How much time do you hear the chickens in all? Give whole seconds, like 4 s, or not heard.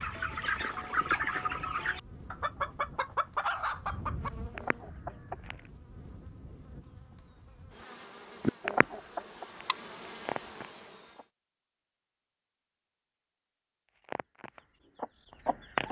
10 s.